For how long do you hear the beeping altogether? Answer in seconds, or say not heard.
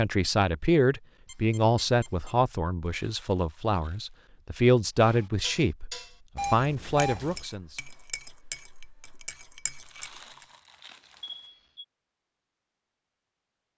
3 s.